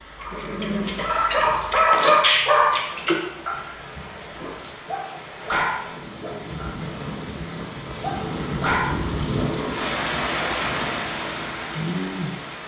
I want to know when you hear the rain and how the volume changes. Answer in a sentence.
The rain can be heard from 0.0 to 12.6 s, getting louder.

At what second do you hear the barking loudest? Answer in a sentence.
The loudest moment of the barking is at 2 seconds.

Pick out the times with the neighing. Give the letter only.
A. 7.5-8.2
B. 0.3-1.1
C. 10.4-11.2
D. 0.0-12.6
B.